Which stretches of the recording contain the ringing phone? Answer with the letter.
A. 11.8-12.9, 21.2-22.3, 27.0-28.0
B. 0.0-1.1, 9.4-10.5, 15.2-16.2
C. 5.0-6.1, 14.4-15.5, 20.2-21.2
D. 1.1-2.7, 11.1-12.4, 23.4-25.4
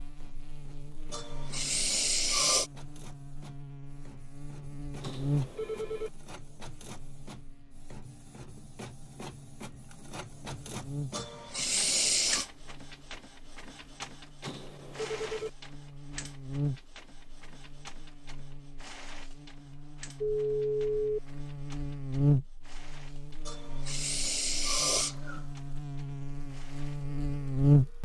C.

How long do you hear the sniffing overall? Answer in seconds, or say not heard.
5 s.